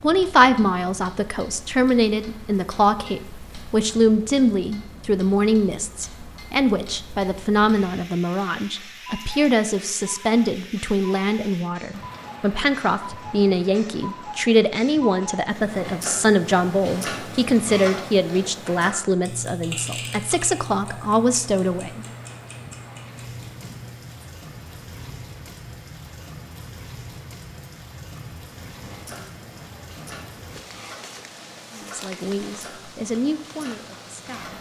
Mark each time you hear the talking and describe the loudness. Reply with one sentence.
The talking can be heard from 0.0 to 22.1 s, at a steady volume; and briefly from 31.8 to 34.5 s.